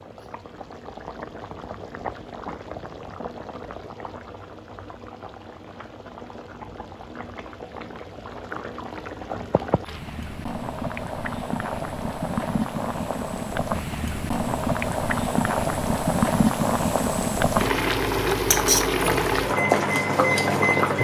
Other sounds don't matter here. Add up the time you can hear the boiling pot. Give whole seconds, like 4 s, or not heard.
21 s.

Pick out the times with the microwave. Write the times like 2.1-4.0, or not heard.
19.4-20.9.